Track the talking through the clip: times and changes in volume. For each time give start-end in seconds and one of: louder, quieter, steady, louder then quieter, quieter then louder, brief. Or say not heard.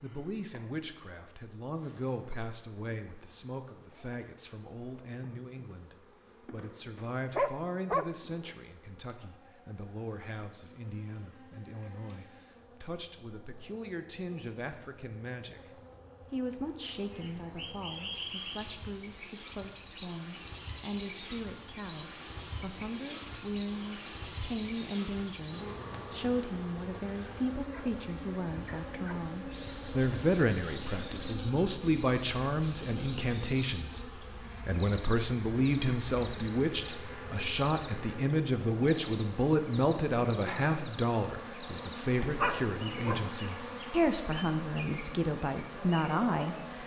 0.0-46.8 louder.